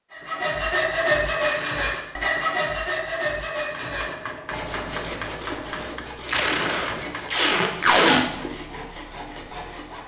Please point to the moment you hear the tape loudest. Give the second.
8 s.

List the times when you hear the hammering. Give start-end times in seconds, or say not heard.
3.6-7.3.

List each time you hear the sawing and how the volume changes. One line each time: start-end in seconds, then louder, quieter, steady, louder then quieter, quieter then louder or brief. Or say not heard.
0.1-10.0 quieter.